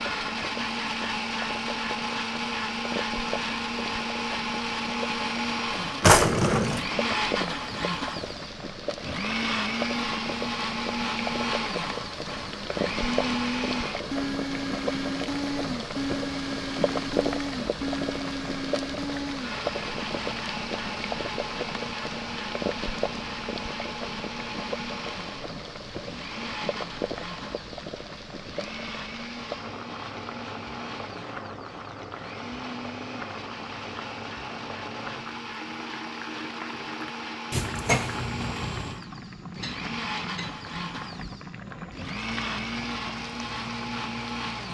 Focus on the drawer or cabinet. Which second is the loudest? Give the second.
6 s.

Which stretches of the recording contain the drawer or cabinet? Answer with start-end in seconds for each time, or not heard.
6.0-6.8, 37.5-39.0.